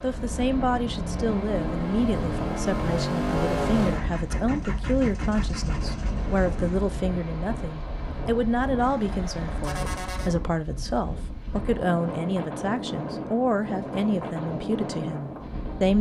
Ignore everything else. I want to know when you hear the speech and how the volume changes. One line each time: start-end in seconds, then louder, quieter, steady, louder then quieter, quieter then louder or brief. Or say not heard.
0.0-15.9 steady.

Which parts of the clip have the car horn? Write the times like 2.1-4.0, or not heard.
8.8-10.3.